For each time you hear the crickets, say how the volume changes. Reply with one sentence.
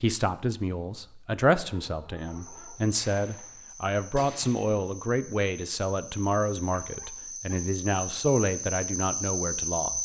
You can hear the crickets from 2.1 to 10.0 s, getting louder.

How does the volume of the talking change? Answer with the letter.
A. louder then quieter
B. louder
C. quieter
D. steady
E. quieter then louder
D.